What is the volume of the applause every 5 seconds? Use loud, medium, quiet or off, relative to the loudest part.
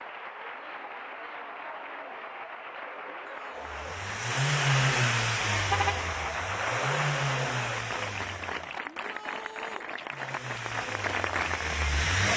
medium, loud, loud.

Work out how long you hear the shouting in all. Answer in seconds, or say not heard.
2 s.